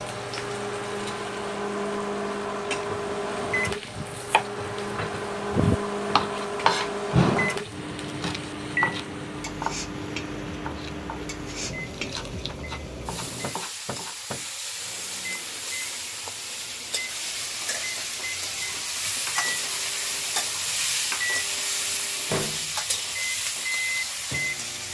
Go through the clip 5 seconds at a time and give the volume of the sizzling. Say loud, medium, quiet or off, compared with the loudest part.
medium, medium, medium, loud, loud.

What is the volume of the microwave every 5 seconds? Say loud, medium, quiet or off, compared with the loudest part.
loud, loud, medium, medium, loud.